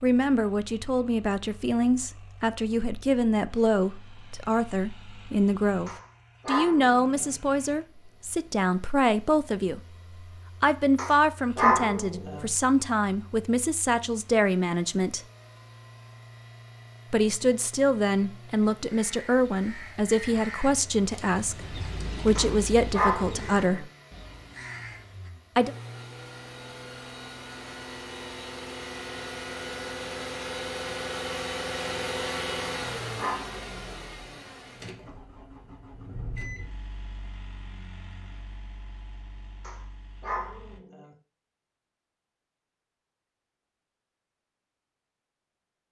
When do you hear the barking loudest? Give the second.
12 s.